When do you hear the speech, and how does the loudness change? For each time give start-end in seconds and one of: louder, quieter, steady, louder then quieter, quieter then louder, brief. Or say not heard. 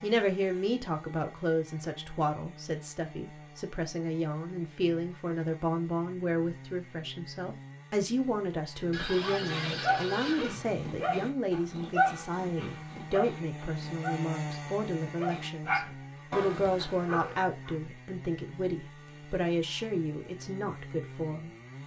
0.0-21.5 steady.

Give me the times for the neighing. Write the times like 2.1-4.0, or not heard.
8.9-10.5.